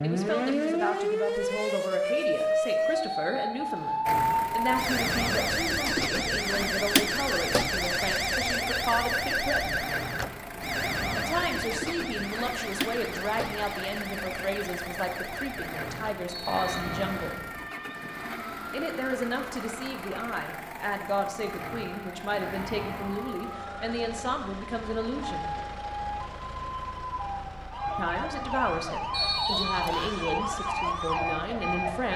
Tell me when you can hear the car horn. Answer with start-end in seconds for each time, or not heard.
not heard.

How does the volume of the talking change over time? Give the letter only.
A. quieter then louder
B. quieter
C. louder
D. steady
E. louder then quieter
D.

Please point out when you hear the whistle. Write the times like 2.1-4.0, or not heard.
3.0-4.1, 16.2-17.4, 29.1-30.1.